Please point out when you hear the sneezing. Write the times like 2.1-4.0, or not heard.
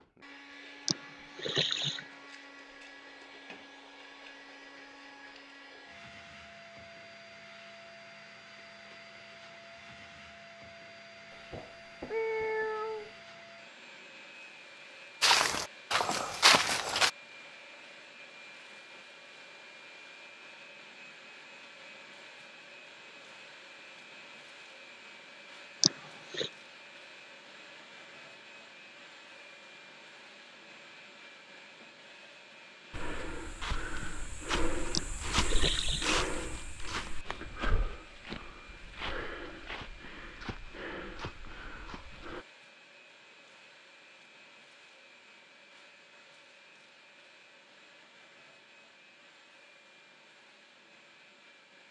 0.8-2.0, 25.8-26.5, 34.9-36.1.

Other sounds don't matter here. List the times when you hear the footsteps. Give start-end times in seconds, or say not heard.
15.2-17.1, 32.9-42.5.